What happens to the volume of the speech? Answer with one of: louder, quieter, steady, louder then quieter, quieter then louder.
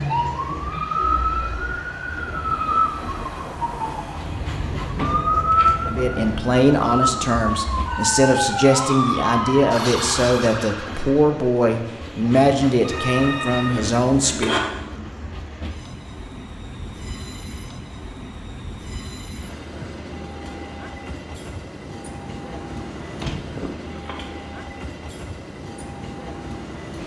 steady.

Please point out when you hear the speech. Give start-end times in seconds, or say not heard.
5.8-14.6.